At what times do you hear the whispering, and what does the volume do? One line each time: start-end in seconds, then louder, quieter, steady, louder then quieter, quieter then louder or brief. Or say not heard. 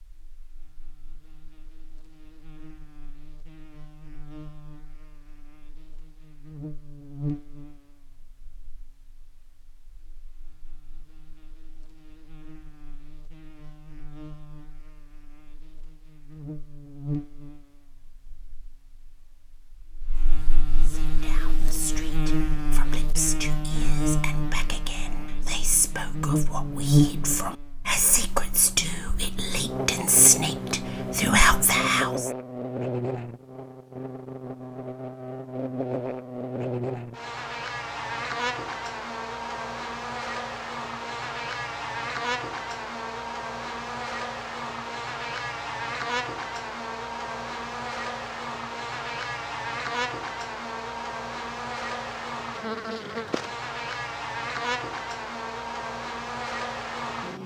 20.8-32.3 louder.